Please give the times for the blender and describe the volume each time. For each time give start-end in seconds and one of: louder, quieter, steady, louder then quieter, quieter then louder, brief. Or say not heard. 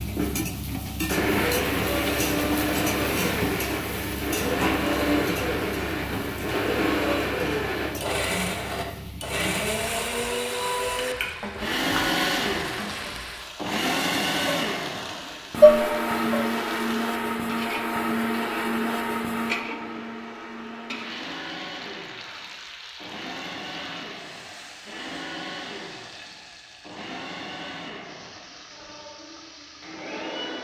0.0-30.5 quieter.